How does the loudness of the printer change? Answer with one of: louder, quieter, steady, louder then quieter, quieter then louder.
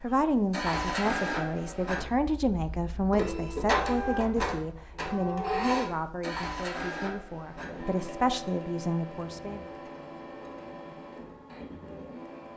quieter.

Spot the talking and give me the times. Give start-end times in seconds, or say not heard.
0.0-9.6.